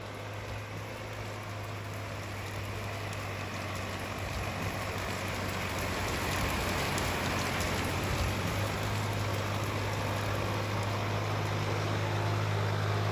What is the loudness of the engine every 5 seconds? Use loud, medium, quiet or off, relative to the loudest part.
medium, loud, loud.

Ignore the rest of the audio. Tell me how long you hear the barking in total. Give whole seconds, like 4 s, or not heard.
not heard.